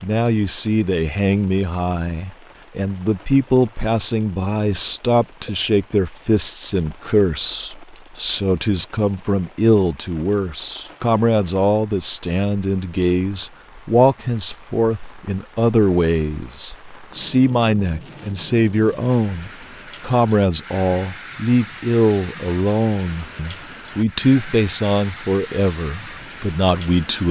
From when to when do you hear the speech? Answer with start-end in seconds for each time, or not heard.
0.0-27.2.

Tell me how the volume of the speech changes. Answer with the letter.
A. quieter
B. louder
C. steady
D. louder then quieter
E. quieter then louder
C.